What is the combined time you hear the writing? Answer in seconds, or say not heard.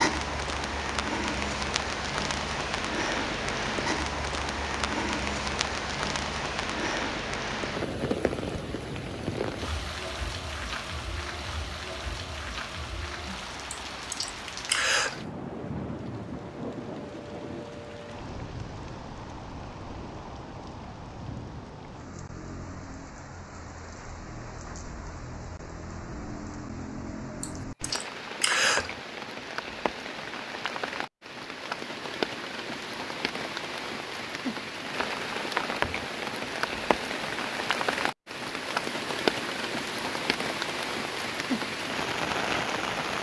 not heard.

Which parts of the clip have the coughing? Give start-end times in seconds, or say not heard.
13.7-15.2, 27.4-28.9.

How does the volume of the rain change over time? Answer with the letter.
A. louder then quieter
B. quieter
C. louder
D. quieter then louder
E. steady
D.